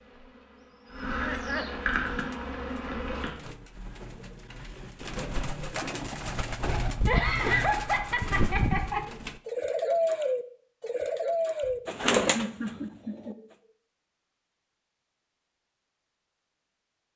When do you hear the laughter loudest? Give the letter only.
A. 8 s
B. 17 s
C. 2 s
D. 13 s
A.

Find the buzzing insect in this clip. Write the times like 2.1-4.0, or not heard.
0.0-3.3.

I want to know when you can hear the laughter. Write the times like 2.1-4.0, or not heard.
1.1-1.8, 7.0-9.1, 11.6-13.4.